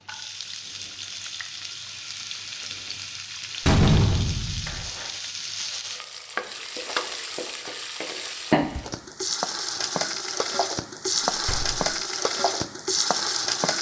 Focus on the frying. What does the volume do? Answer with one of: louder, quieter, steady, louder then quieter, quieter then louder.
louder.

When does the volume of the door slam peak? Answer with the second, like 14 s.
4 s.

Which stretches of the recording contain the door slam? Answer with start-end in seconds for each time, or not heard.
3.6-4.9, 11.4-11.8.